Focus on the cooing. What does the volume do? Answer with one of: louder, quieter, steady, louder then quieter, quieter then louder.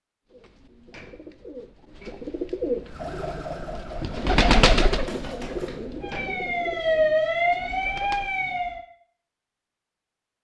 louder then quieter.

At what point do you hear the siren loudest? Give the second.
7 s.